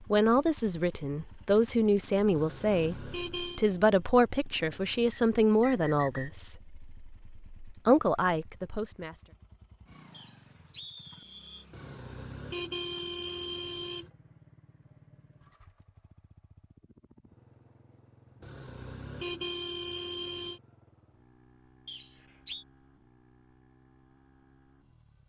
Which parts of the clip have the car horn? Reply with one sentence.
The car horn can be heard from 2.4 to 3.6 s, from 11.7 to 14.1 s and from 18.4 to 20.6 s.